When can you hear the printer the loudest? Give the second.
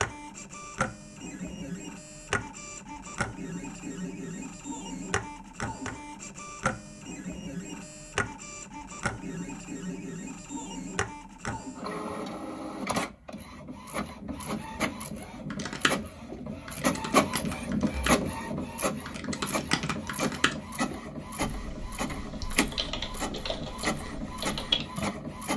18 s.